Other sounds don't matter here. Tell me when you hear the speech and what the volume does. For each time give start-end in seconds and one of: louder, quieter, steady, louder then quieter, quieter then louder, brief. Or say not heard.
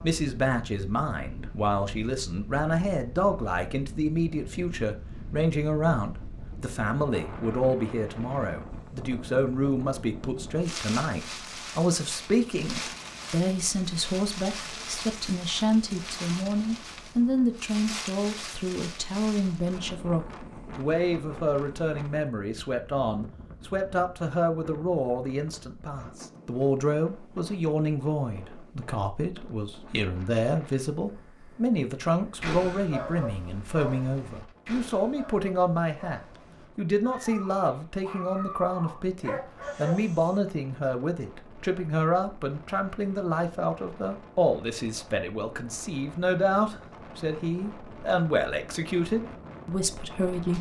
0.0-50.5 steady.